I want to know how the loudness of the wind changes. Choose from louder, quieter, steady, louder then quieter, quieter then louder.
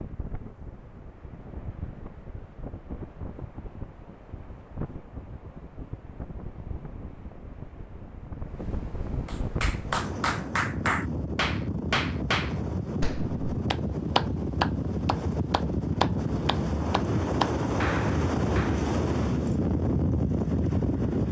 louder.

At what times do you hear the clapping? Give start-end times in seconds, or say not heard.
9.2-18.9.